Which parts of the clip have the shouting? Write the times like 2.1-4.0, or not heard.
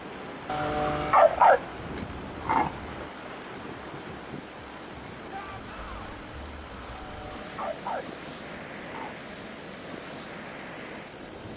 5.3-6.1.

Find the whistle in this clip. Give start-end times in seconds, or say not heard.
not heard.